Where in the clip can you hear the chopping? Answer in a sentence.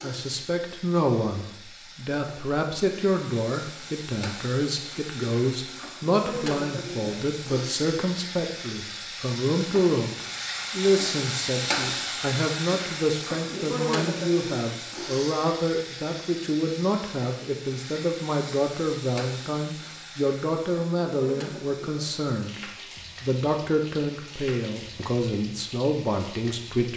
The chopping can't be heard in this clip.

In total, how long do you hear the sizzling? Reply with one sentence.
The sizzling can be heard for 27 seconds in total.